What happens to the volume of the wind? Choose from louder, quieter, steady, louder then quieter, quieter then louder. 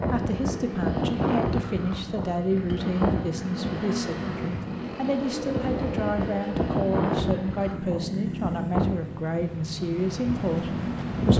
quieter.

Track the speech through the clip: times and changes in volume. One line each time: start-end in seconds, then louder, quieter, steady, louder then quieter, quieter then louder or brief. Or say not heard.
0.0-11.3 steady.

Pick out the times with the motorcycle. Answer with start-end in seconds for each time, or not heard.
0.0-11.3.